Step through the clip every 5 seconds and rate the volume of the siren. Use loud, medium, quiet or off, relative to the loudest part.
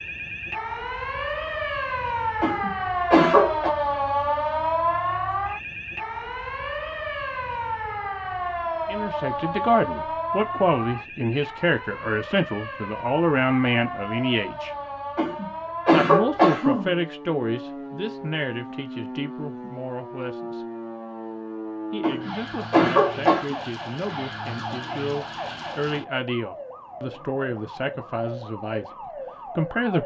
loud, loud, medium, medium, medium, medium.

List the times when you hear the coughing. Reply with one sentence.
You can hear the coughing from 2.4 to 3.7 s, from 15.2 to 16.9 s and from 22.0 to 23.6 s.